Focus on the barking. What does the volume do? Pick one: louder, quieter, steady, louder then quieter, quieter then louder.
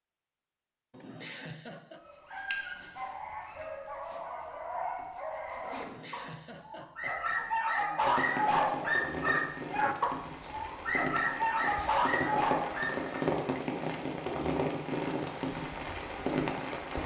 louder.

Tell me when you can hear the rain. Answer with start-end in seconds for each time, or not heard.
8.0-17.0.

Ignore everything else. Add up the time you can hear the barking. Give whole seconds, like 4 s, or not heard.
11 s.